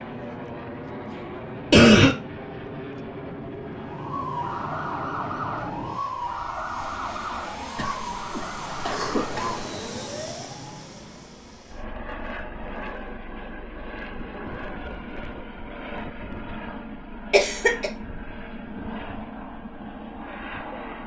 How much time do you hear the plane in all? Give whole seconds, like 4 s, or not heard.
21 s.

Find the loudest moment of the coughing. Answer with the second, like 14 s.
2 s.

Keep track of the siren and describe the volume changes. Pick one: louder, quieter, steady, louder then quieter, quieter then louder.
quieter.